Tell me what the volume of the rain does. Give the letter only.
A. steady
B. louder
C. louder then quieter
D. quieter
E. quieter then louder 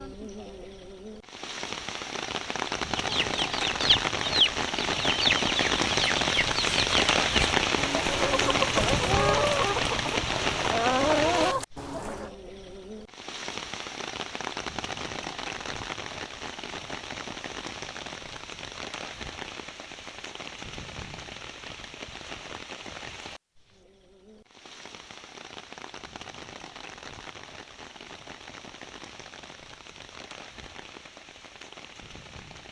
D.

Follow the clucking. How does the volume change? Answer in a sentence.
The volume of the clucking stays about the same.